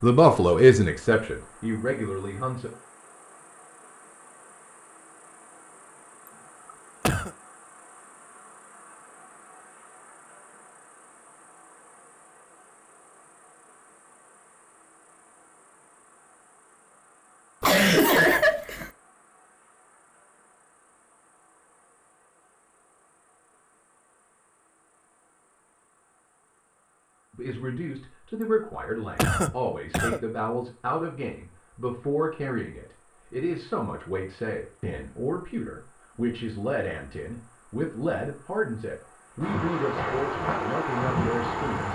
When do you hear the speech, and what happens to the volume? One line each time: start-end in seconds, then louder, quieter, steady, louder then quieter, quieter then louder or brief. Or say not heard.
0.0-2.7 brief
27.3-41.9 steady.